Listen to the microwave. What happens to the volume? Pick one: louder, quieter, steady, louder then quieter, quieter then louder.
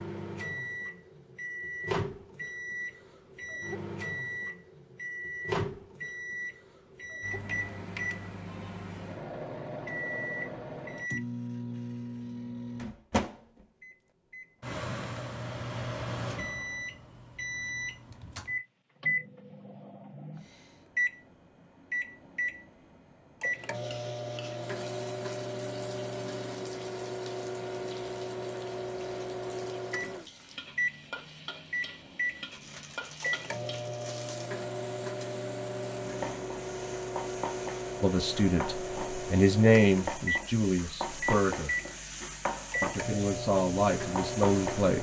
steady.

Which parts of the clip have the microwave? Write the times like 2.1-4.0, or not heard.
0.0-44.9.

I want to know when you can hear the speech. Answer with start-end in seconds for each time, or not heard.
38.0-41.8, 42.8-44.9.